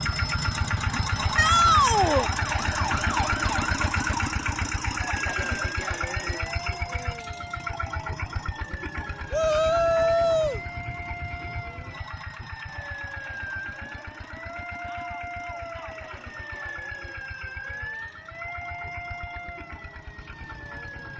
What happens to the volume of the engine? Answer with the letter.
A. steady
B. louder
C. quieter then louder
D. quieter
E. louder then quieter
D.